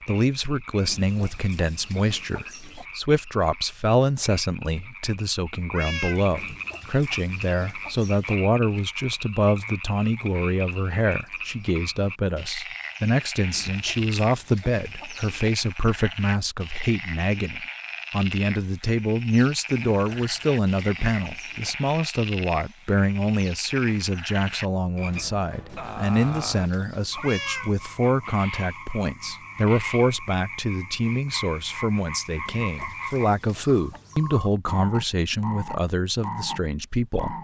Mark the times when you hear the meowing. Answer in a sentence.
You can hear the meowing from 5.7 to 6.3 s and from 27.2 to 27.8 s.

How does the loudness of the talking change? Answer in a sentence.
The volume of the talking stays about the same.